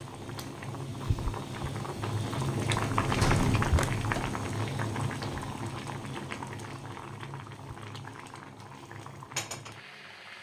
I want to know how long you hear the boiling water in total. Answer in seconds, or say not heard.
10 s.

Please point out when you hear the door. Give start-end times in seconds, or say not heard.
2.7-4.4.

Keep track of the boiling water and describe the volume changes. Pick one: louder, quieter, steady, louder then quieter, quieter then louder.
louder then quieter.